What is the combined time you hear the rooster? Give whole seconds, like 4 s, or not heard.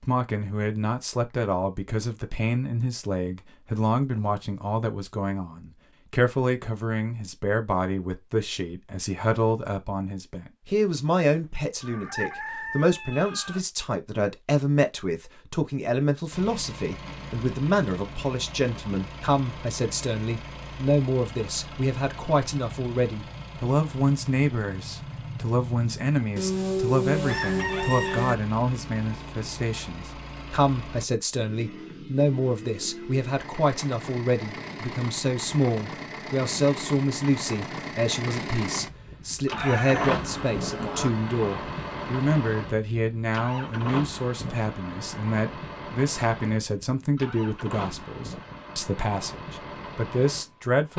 5 s.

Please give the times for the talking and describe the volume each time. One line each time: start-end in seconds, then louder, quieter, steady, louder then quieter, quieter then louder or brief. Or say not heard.
0.0-50.9 steady.